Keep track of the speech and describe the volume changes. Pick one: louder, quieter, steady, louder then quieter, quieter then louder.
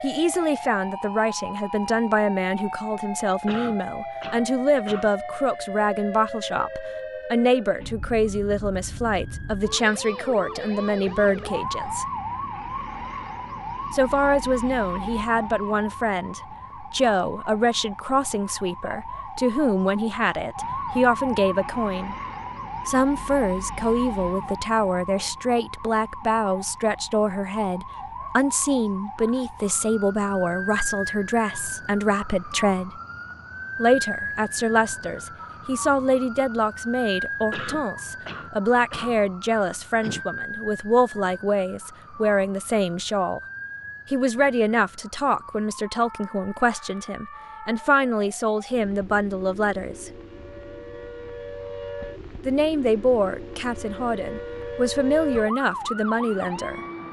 steady.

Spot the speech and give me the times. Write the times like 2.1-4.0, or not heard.
0.0-12.1, 13.9-22.1, 22.9-32.9, 33.8-43.4, 44.1-50.1, 52.5-56.8.